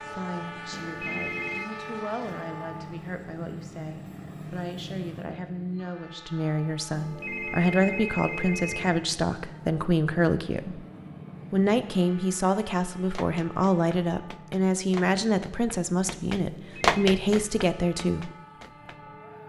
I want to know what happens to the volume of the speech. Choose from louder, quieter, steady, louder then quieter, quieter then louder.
louder.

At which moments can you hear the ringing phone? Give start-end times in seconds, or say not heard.
0.7-1.7, 6.9-9.1, 16.4-17.0.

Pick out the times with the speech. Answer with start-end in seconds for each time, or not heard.
0.0-10.8, 11.5-18.3.